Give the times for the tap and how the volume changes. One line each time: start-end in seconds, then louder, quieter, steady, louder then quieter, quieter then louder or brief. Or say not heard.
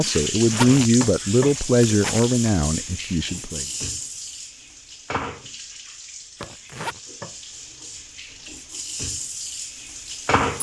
0.0-10.5 quieter then louder.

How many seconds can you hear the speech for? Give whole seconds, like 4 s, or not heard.
4 s.